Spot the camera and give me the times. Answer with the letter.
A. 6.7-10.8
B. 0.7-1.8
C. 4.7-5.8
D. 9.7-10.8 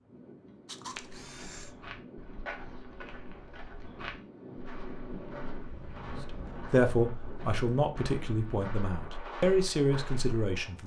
B.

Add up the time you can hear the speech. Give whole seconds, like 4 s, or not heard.
4 s.